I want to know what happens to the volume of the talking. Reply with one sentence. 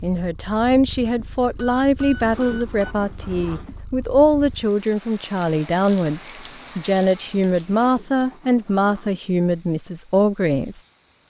The loudness of the talking stays about the same.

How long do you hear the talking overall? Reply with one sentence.
You can hear the talking for 11 seconds altogether.